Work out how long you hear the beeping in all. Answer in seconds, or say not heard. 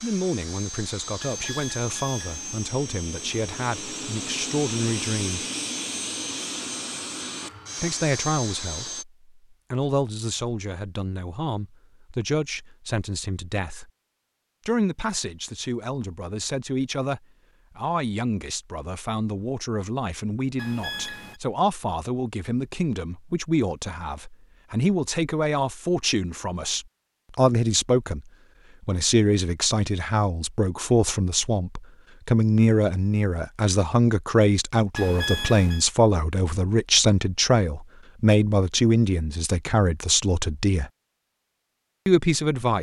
3 s.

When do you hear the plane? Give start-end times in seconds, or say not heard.
0.0-9.1.